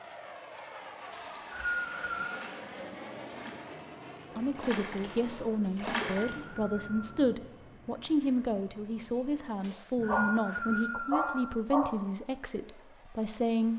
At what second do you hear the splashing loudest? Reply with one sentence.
The volume of the splashing peaks at 6 seconds.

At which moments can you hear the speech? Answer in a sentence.
You can hear the speech from 4.3 to 13.7 s.